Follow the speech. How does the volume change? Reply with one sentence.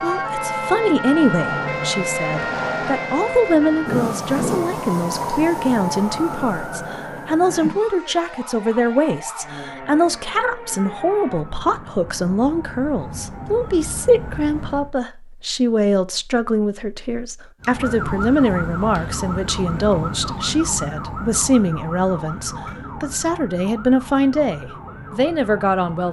The loudness of the speech stays about the same.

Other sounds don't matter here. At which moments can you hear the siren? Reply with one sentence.
The siren can be heard from 0.0 to 14.9 s and from 17.6 to 26.0 s.